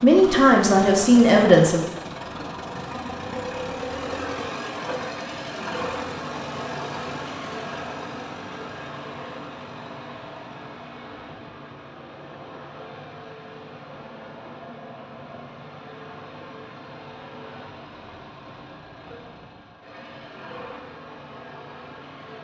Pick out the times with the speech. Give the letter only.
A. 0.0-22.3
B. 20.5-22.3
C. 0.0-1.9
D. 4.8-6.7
C.